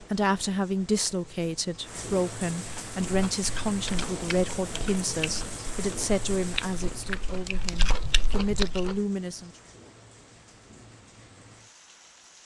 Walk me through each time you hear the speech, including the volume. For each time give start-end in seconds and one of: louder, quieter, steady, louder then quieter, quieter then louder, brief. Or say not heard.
0.0-9.5 steady.